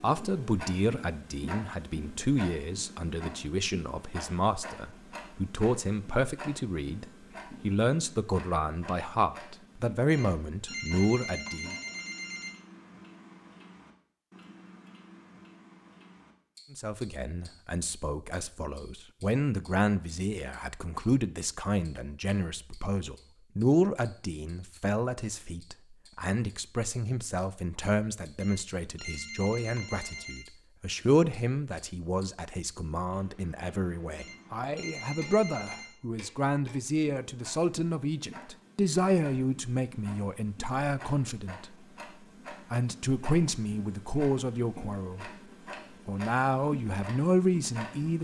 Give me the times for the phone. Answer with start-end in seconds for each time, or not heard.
10.1-12.6, 28.4-30.4, 34.1-36.0.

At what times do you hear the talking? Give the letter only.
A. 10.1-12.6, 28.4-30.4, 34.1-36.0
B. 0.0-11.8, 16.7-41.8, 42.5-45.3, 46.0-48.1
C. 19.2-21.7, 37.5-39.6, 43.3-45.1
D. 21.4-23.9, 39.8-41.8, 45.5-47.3
B.